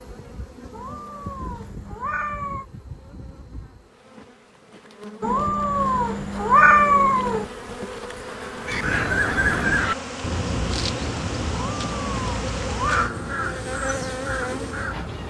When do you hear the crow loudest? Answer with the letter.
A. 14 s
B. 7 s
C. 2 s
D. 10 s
D.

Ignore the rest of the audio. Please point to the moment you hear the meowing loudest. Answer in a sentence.
The loudest moment of the meowing is at 7 seconds.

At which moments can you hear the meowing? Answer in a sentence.
You can hear the meowing from 0.7 to 2.6 s, from 5.2 to 7.5 s and from 11.8 to 13.1 s.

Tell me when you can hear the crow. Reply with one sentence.
You can hear the crow from 8.6 to 15.2 s.